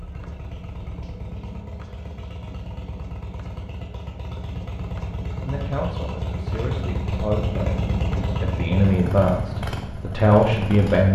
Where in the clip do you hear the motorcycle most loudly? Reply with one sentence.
The volume of the motorcycle peaks at 8 seconds.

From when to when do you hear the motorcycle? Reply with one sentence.
The motorcycle can be heard from 0.0 to 11.0 s.